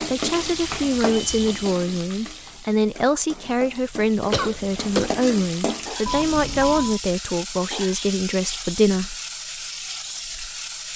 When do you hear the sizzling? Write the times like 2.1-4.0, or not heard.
0.0-10.9.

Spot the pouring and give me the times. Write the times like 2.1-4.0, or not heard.
not heard.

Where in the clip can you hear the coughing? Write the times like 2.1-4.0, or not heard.
4.3-5.2.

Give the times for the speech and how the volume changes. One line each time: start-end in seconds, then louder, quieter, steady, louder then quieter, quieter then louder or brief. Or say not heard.
0.0-9.2 steady.